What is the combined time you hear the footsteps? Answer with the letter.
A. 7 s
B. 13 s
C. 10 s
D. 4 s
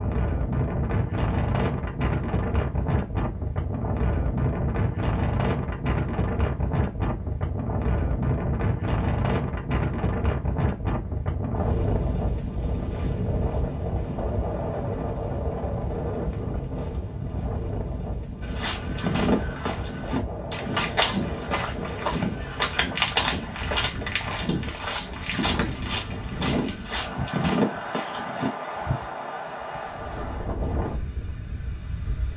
C.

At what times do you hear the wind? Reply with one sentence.
You can hear the wind from 0.0 to 32.3 s.